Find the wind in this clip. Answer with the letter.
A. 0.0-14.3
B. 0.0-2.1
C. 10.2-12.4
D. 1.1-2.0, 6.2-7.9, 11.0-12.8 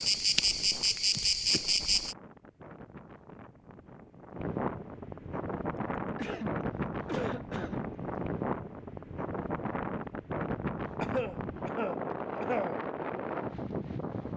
A.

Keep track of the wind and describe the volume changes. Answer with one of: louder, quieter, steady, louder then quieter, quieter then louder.
louder.